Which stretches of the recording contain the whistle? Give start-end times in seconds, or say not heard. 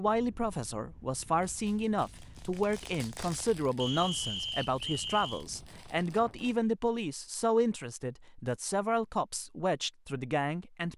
3.8-5.5.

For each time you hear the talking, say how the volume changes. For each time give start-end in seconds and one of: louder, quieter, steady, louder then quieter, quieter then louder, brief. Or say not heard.
0.0-10.9 steady.